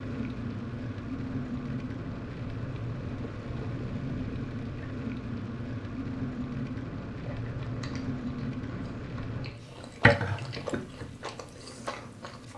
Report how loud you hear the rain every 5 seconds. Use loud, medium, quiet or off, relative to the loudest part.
loud, loud, quiet.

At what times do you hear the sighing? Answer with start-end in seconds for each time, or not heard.
not heard.